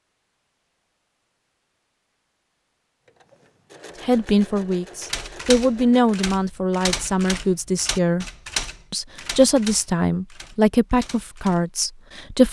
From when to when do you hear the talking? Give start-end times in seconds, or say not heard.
4.0-8.2, 8.9-12.4.